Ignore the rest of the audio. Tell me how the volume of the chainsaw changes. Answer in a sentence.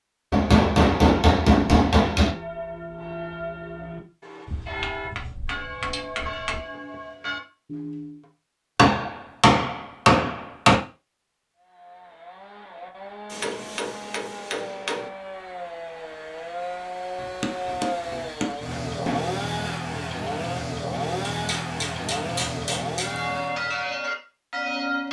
The loudness of the chainsaw goes up.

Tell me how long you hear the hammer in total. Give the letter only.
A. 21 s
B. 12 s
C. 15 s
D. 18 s
B.